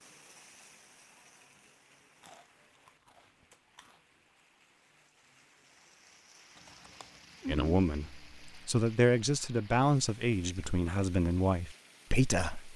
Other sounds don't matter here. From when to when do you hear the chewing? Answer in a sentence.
The chewing can be heard from 2.2 to 4.0 s and from 6.5 to 8.7 s.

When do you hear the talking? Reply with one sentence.
The talking can be heard from 7.5 to 12.7 s.